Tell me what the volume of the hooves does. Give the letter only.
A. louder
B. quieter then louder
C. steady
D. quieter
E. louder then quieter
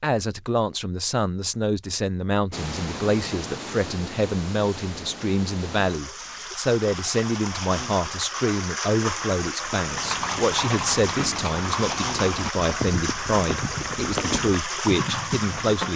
C.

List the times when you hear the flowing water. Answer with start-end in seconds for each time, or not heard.
2.5-15.9.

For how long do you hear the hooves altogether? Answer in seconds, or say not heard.
6 s.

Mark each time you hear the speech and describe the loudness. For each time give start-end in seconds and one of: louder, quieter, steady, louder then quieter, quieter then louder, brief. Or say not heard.
0.0-15.9 steady.